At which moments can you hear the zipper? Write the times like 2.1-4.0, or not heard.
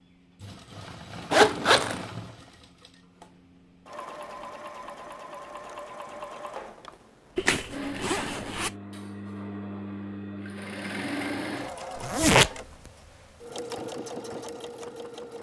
1.3-2.0, 7.3-8.7, 11.9-12.5.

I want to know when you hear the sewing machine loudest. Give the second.
12 s.